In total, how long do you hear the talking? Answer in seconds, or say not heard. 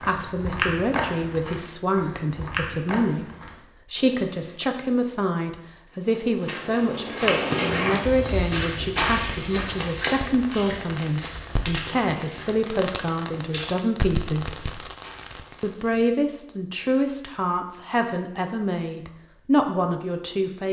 20 s.